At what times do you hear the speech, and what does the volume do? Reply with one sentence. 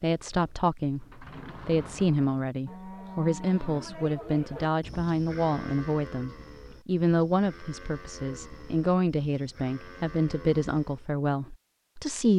You can hear the speech from 0.0 to 12.3 s, at a steady volume.